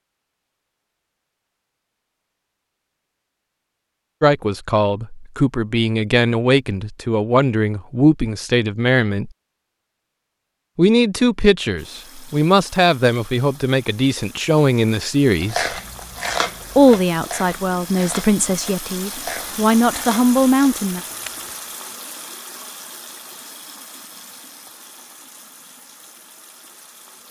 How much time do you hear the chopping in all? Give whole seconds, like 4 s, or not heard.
not heard.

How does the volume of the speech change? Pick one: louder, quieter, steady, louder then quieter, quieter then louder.
steady.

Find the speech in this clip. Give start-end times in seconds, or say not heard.
4.2-9.3, 10.8-15.7, 16.8-21.0.